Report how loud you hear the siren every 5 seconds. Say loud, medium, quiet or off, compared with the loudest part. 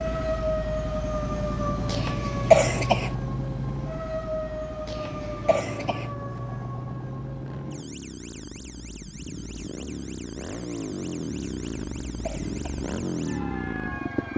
loud, medium, quiet.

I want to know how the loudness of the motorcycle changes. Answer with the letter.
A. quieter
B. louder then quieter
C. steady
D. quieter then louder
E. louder
D.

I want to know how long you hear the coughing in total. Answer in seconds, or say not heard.
4 s.